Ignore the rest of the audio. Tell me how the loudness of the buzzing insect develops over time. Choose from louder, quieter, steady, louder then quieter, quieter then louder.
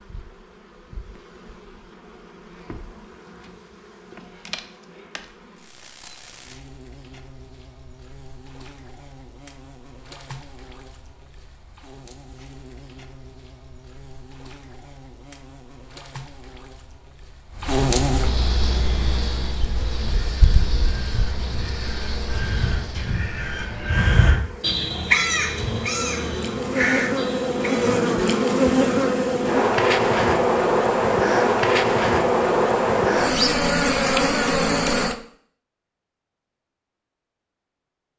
louder.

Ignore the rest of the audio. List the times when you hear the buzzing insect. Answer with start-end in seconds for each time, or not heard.
0.0-35.1.